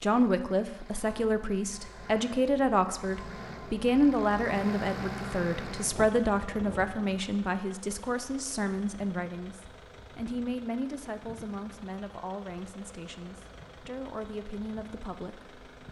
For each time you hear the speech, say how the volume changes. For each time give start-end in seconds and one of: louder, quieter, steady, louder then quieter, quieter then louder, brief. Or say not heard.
0.0-15.6 quieter.